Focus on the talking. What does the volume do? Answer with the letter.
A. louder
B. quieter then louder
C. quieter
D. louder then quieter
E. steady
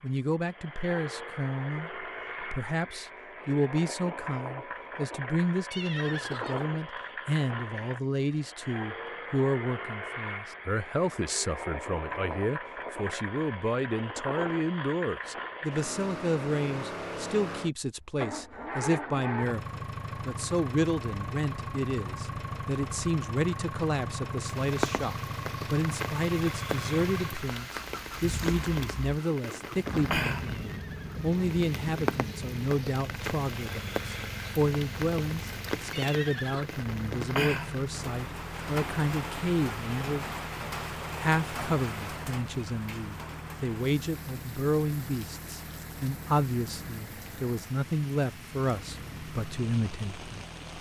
E.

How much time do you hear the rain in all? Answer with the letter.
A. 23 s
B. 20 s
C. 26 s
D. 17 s
C.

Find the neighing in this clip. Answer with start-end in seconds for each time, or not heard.
5.7-6.7, 30.5-31.4, 35.9-36.7.